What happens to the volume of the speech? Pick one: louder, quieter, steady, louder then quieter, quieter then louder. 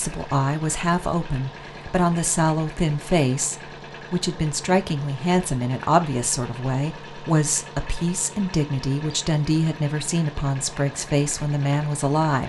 steady.